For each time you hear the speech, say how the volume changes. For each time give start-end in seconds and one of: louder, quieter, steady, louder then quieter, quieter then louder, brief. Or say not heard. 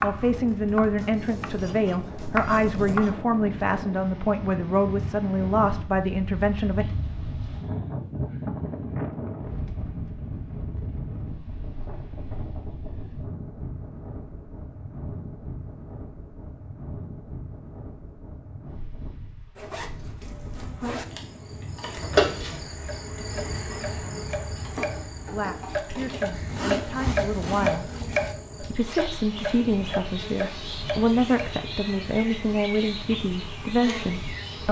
0.0-6.8 steady
25.3-27.9 brief
28.6-34.6 steady.